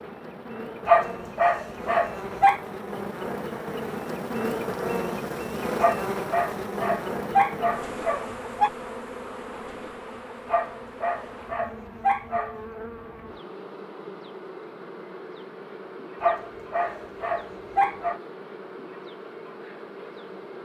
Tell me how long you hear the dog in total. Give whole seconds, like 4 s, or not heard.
9 s.